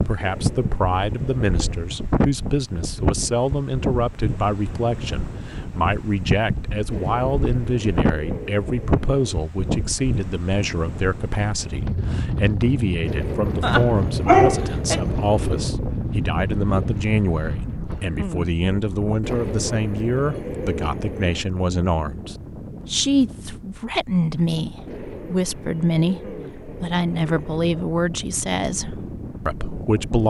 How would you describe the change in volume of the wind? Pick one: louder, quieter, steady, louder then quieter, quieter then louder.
quieter.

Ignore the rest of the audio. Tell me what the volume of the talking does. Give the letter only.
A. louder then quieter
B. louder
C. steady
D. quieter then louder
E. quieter
C.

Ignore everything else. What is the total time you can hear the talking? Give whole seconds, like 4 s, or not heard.
30 s.